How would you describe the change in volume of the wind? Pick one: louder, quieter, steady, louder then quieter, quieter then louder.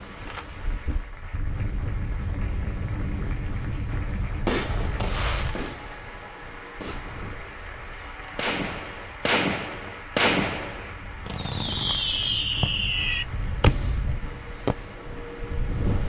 quieter then louder.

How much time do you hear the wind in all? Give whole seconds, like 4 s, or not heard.
16 s.